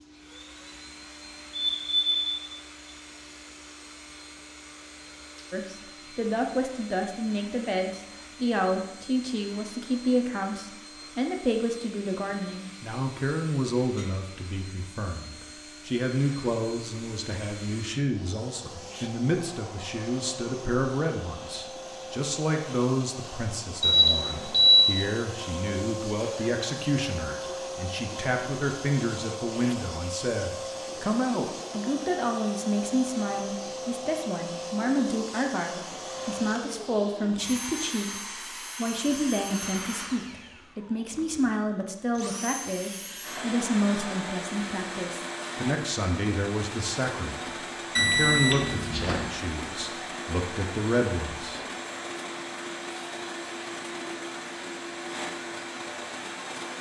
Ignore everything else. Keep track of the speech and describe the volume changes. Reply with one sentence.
The loudness of the speech stays about the same.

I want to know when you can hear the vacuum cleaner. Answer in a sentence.
The vacuum cleaner can be heard from 0.0 to 56.7 s.